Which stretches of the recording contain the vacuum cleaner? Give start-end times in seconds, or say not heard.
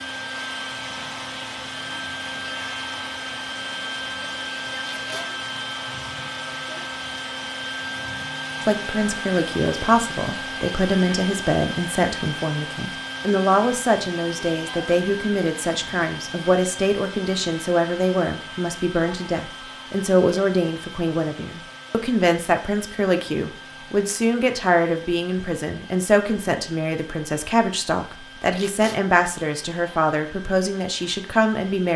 0.0-31.9.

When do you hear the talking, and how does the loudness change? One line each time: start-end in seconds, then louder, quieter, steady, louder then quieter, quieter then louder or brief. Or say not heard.
8.6-31.9 steady.